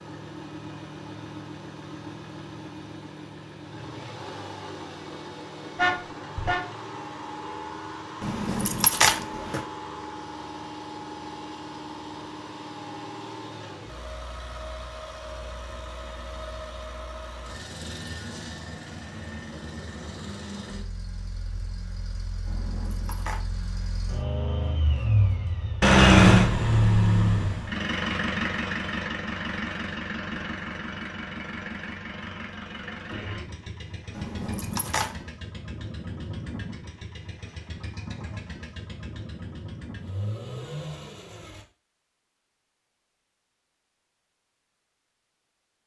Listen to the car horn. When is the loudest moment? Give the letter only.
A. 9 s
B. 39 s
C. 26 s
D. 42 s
C.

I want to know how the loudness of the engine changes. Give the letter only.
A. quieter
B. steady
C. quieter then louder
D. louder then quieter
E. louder
D.